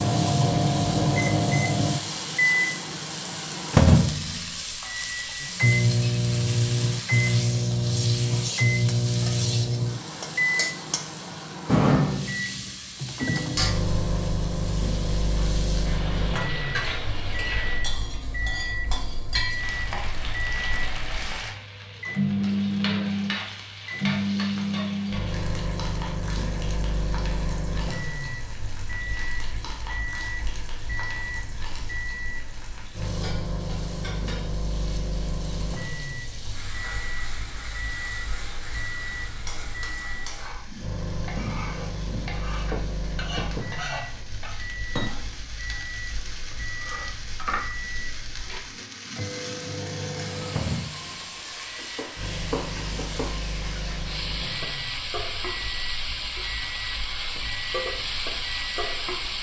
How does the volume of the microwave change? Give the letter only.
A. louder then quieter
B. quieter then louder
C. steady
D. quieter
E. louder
D.